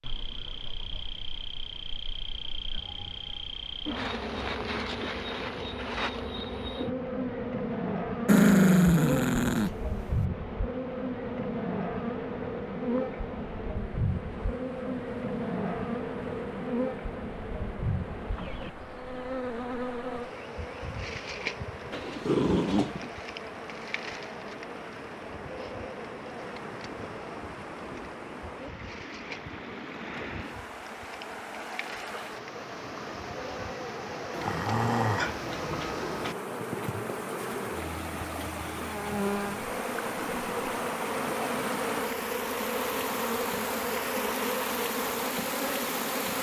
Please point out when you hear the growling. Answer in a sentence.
You can hear the growling from 8.2 to 10.2 s, from 21.9 to 23.1 s and from 34.3 to 36.4 s.